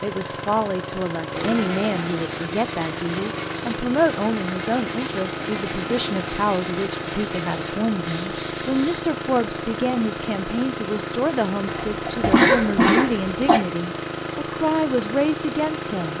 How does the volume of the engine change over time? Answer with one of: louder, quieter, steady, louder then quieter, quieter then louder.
steady.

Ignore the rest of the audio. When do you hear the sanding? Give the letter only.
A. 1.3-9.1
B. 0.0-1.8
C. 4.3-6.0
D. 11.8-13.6
A.